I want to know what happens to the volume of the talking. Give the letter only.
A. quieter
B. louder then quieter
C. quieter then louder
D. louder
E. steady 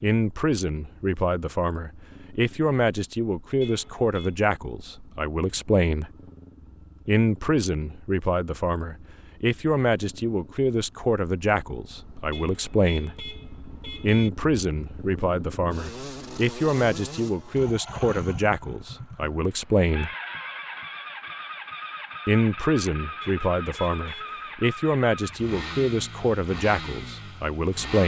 E.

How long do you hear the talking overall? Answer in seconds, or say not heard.
24 s.